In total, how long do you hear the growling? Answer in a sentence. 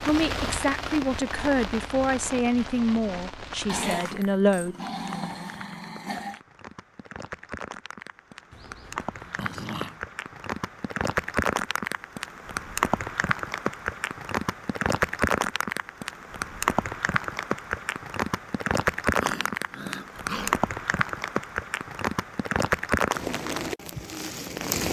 The growling can be heard for 6 seconds in total.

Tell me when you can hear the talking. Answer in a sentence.
You can hear the talking from 0.0 to 4.8 s.